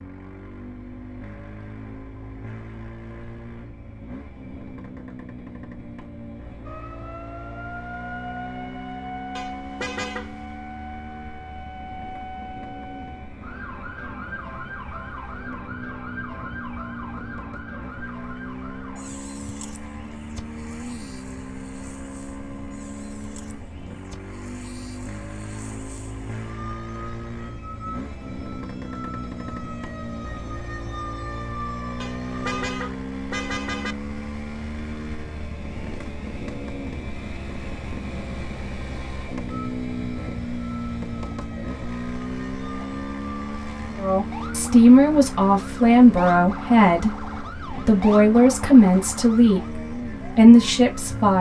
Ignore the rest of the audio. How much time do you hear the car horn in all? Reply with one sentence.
The car horn can be heard for 3 seconds in total.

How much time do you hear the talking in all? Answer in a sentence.
The talking can be heard for 7 seconds in total.